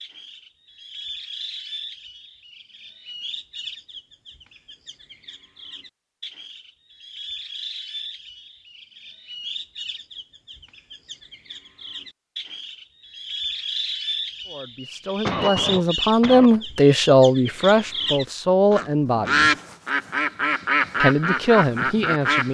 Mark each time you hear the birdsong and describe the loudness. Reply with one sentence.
You can hear the birdsong from 0.0 to 22.4 s, getting louder.